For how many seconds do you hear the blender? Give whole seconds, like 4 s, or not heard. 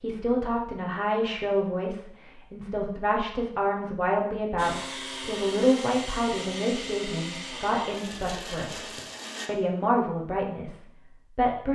5 s.